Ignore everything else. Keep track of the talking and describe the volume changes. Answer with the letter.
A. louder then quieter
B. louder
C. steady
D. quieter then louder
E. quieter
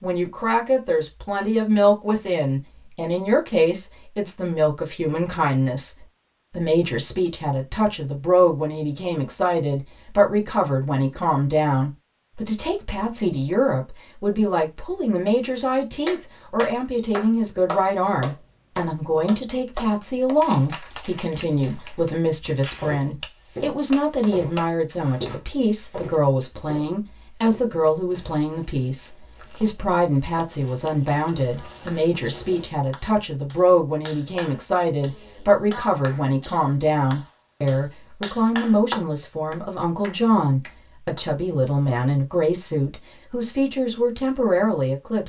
C.